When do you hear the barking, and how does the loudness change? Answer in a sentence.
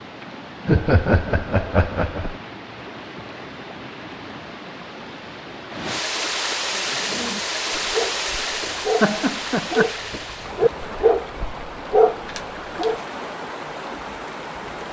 The barking can be heard from 6.7 to 13.0 s, getting louder.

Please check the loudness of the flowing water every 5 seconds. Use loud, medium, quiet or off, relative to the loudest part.
medium, loud, medium.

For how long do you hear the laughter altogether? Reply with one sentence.
The laughter can be heard for 3 seconds in total.